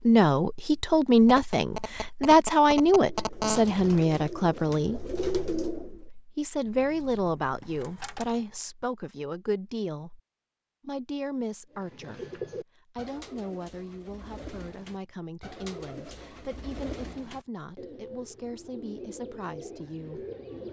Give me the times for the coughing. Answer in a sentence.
You can't hear the coughing here.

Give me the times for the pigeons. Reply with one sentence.
You can hear the pigeons from 2.9 to 6.0 s and from 11.7 to 20.6 s.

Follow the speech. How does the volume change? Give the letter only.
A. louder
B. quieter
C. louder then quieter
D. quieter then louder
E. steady
B.